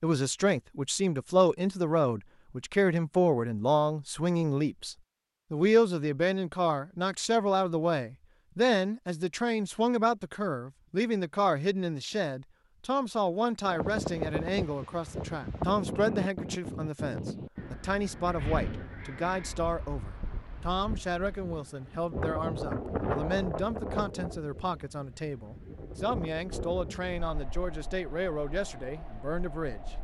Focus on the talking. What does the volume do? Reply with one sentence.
The loudness of the talking goes down.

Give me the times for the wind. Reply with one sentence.
You can hear the wind from 13.7 to 30.0 s.